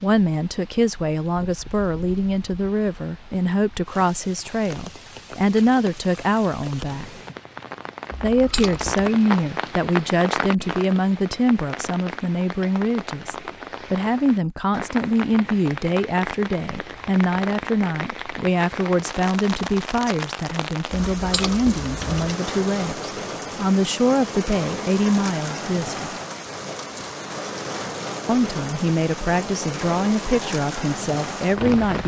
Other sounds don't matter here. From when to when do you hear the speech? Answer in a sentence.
The speech can be heard from 0.0 to 7.1 s, from 8.2 to 26.1 s and from 28.2 to 32.0 s.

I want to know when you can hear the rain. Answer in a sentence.
You can hear the rain from 0.0 to 32.0 s.